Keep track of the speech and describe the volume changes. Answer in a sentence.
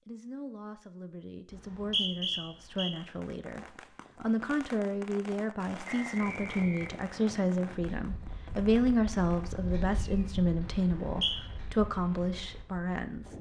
The loudness of the speech goes up.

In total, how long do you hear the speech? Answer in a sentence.
The speech can be heard for 13 seconds in total.